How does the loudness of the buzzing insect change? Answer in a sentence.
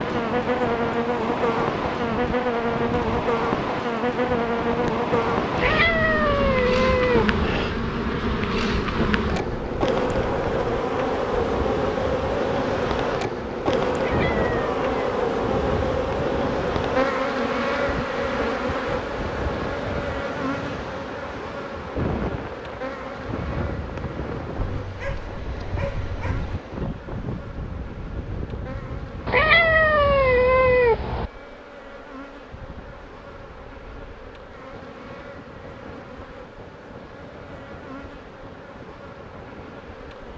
The volume of the buzzing insect goes down.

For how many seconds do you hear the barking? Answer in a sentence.
You can hear the barking for 2 seconds altogether.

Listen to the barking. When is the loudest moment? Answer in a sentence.
The loudest moment of the barking is at 26 seconds.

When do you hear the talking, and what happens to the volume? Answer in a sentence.
The talking can't be heard in this clip.